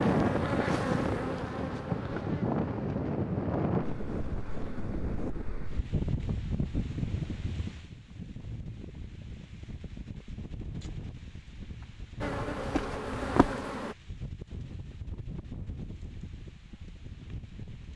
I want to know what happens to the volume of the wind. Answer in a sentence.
The volume of the wind goes down.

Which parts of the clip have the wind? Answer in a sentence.
You can hear the wind from 0.0 to 17.9 s.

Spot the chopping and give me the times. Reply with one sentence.
The chopping can't be heard in this clip.